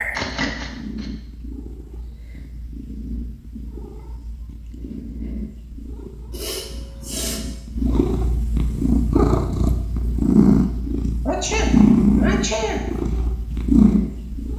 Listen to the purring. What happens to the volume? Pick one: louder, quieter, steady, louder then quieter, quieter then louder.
louder.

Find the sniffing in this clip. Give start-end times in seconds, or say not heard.
0.1-1.1, 6.3-7.5, 11.2-12.8.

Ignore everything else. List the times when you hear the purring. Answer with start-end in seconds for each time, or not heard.
0.0-14.5.